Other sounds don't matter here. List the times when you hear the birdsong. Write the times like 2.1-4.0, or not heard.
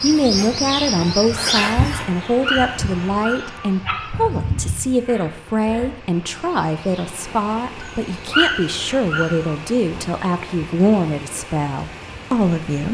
0.0-7.0.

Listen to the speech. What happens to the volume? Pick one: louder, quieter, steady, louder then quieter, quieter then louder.
steady.